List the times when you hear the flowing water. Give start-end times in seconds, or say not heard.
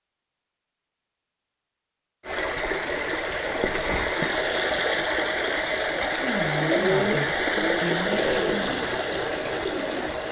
2.2-10.2.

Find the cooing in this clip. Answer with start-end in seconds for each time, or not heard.
6.5-10.2.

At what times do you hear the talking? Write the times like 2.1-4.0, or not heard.
6.2-8.8.